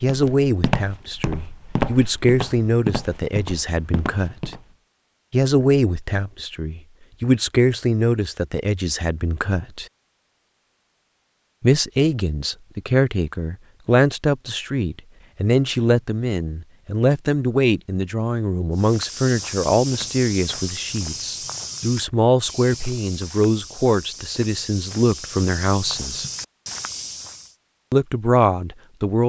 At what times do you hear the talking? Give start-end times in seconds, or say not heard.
0.0-4.5, 5.3-9.8, 11.6-26.2, 27.9-29.2.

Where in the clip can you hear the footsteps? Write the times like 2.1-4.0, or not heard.
0.0-4.8, 18.8-27.5.